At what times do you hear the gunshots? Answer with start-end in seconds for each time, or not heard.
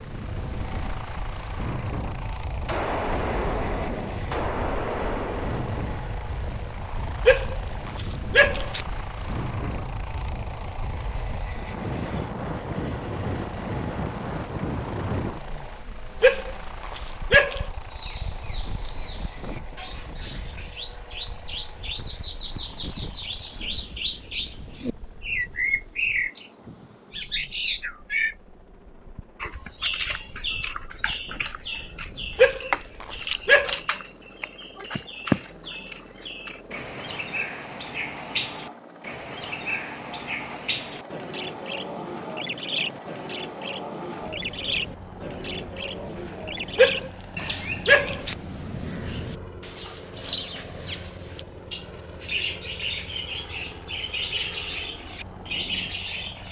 2.6-5.8.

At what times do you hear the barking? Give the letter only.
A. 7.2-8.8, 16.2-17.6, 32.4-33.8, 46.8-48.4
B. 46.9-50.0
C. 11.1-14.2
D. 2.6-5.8
A.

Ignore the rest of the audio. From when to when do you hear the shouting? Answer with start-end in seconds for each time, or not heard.
not heard.